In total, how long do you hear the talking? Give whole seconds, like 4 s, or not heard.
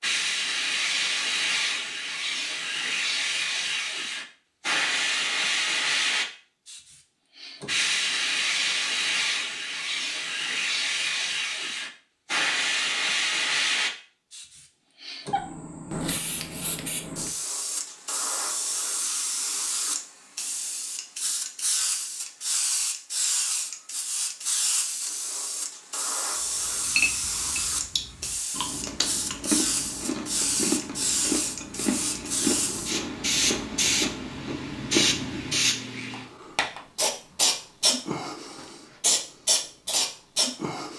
not heard.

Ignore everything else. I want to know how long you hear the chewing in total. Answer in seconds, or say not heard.
9 s.